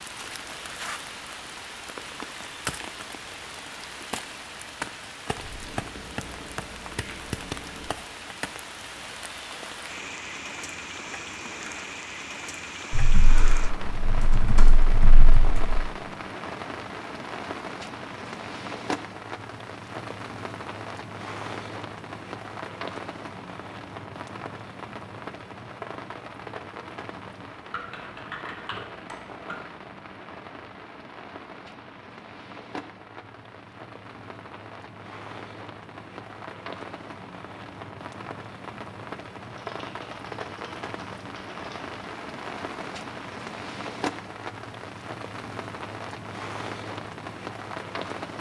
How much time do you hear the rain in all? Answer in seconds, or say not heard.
48 s.